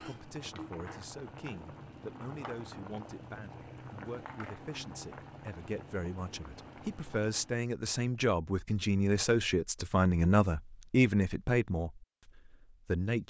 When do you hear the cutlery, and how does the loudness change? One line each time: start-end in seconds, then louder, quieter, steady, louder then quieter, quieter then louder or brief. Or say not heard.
not heard.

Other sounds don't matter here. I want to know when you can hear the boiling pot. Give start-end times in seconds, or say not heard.
0.0-7.6.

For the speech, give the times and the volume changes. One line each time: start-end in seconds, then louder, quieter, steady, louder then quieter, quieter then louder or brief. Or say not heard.
0.0-13.2 louder.